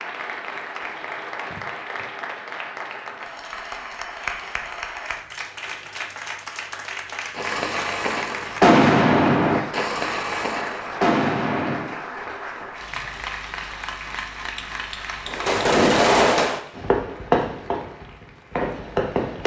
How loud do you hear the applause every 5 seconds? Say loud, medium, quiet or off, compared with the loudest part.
loud, loud, loud, medium.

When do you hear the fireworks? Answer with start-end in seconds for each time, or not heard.
7.3-11.9, 15.2-19.4.